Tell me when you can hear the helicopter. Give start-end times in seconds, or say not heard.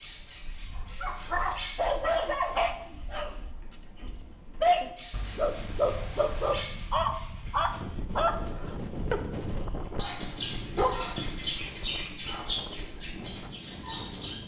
not heard.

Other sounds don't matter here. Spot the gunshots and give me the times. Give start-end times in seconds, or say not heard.
not heard.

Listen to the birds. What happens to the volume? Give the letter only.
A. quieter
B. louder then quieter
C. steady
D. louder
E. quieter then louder
E.